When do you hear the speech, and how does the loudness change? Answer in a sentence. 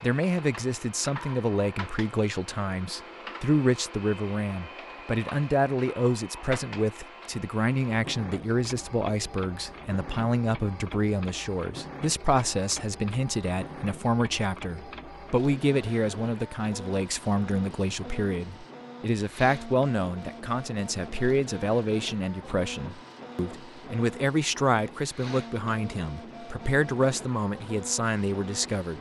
The speech can be heard from 0.0 to 28.9 s, at a steady volume.